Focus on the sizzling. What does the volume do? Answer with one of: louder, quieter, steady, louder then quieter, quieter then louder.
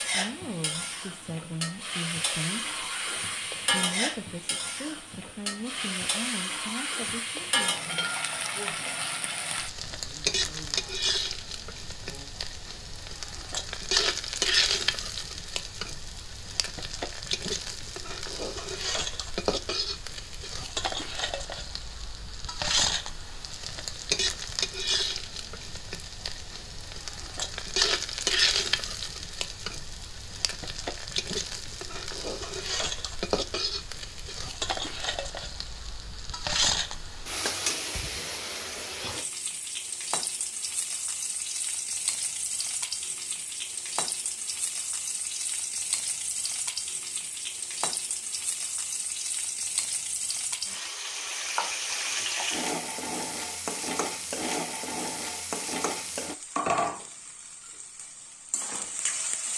steady.